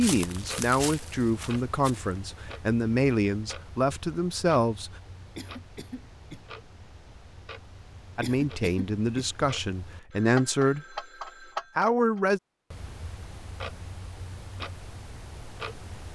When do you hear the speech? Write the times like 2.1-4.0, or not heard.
0.0-4.9, 8.2-11.1, 11.8-12.4.